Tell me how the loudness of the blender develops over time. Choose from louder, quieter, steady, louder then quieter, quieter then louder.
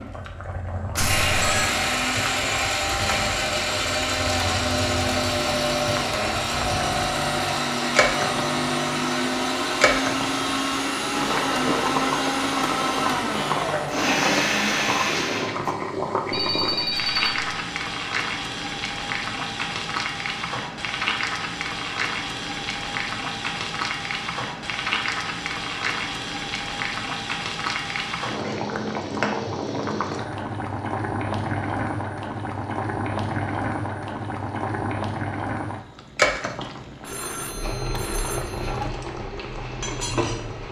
steady.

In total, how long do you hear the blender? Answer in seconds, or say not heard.
16 s.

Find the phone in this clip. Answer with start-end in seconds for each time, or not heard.
1.0-1.8, 16.3-17.3, 37.0-38.9.